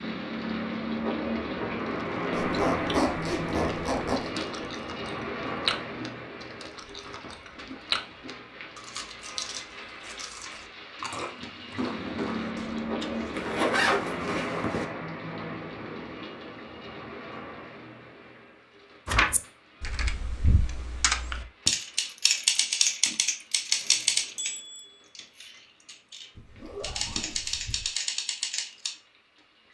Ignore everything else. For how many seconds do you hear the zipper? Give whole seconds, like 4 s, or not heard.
5 s.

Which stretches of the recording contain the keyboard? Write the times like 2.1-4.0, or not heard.
19.1-28.9.